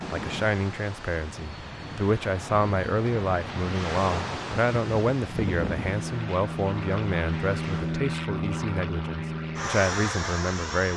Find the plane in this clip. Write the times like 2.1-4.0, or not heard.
0.0-10.9.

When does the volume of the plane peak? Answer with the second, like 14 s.
8 s.